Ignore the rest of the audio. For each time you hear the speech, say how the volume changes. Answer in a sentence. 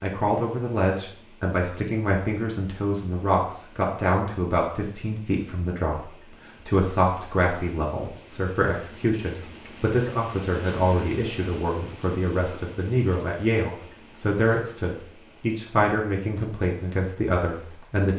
You can hear the speech from 0.0 to 18.1 s, at a steady volume.